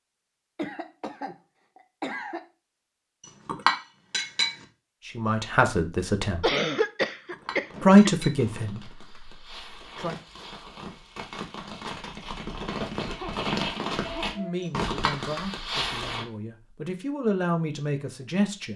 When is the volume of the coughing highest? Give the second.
7 s.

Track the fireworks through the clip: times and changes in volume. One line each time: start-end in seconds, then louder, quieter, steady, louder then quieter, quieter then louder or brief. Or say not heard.
7.3-16.2 louder.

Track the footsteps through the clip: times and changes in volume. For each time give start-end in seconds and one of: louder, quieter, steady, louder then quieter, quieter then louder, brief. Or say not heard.
not heard.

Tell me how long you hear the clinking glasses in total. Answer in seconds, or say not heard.
3 s.